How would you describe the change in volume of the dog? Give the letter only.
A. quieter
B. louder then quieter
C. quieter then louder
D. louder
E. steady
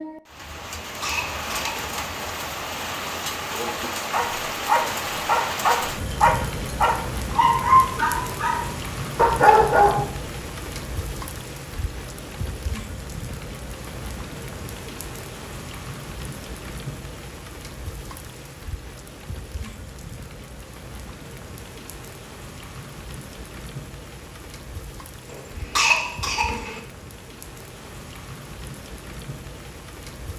D.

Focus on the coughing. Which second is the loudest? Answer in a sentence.
The volume of the coughing peaks at 26 seconds.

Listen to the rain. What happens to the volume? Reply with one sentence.
The loudness of the rain goes down.